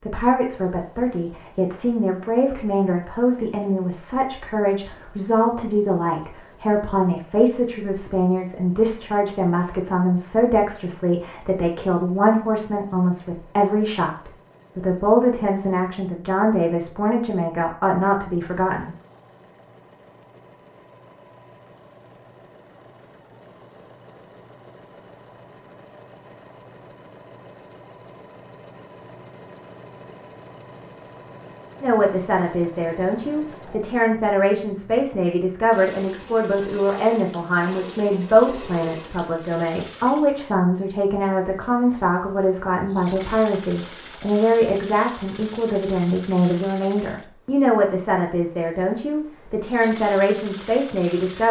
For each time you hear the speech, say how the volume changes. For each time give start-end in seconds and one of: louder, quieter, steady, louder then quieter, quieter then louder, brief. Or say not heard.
0.0-18.9 steady
31.8-51.4 steady.